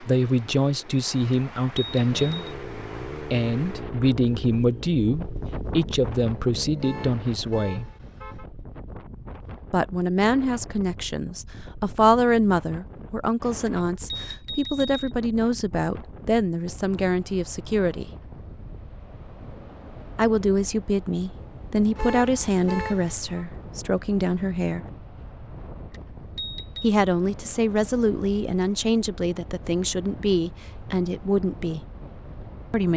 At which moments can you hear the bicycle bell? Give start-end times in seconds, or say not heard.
1.3-2.5, 13.7-15.2, 25.9-26.9.